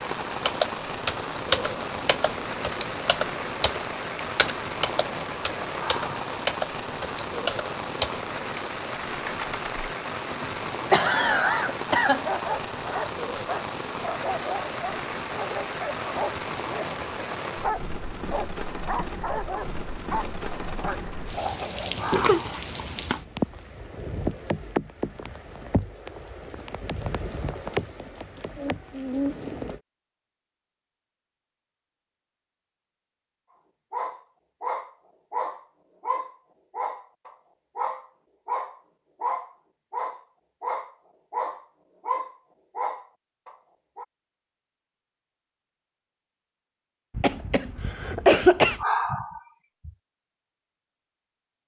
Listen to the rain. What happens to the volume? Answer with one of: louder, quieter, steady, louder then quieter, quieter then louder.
steady.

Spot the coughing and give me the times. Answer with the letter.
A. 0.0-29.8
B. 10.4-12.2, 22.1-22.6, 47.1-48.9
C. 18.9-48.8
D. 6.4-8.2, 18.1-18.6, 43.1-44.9
B.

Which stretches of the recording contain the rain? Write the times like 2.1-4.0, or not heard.
0.0-29.8.